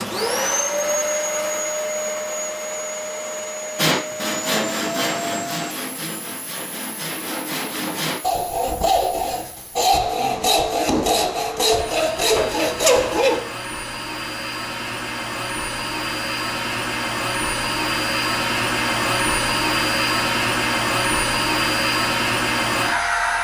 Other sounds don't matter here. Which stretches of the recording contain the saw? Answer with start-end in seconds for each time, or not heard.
3.8-13.4.